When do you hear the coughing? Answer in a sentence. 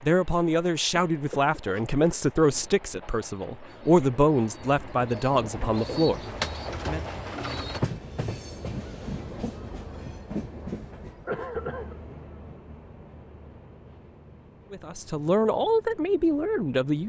The coughing can be heard from 0.9 to 2.2 s and from 11.2 to 11.9 s.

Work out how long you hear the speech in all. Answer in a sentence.
You can hear the speech for 9 seconds altogether.